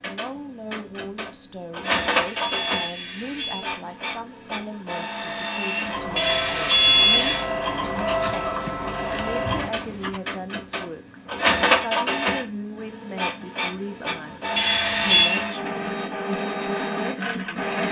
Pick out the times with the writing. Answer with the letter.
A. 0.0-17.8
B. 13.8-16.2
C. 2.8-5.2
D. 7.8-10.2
D.